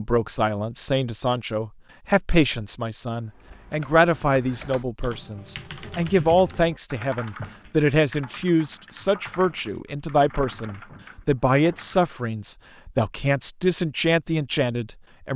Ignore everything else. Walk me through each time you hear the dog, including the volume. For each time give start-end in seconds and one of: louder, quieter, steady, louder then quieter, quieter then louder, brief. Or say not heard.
not heard.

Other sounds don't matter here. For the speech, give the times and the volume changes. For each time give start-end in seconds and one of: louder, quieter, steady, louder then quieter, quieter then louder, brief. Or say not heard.
0.0-15.3 steady.